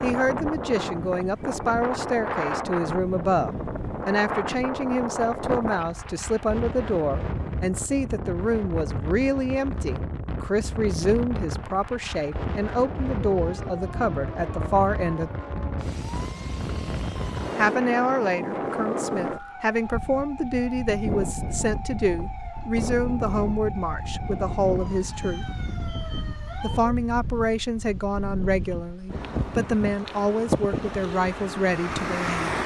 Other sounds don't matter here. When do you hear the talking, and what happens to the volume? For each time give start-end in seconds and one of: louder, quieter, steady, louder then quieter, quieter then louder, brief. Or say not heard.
0.0-15.3 steady
17.6-25.4 steady
26.6-32.6 steady.